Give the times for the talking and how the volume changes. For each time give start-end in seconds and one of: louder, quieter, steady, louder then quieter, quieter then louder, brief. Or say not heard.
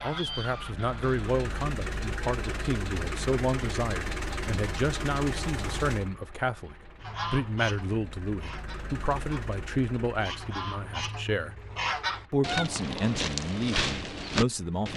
0.0-11.6 steady
12.3-14.9 brief.